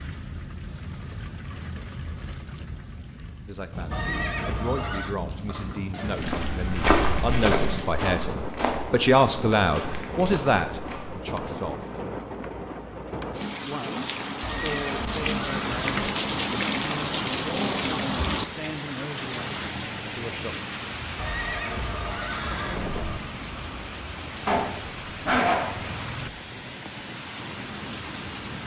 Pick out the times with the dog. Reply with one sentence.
The dog can be heard from 24.4 to 26.1 s.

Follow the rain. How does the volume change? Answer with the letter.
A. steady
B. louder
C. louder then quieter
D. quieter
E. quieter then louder
C.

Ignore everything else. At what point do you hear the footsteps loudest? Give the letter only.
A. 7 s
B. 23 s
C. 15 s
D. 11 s
A.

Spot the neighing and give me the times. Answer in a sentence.
The neighing can be heard from 3.9 to 5.2 s, from 14.4 to 16.1 s and from 21.1 to 23.2 s.